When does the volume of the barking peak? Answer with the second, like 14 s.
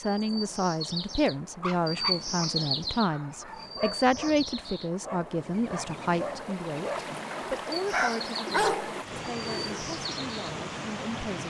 9 s.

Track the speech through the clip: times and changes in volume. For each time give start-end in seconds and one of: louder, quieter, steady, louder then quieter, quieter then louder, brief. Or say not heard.
0.0-11.4 quieter.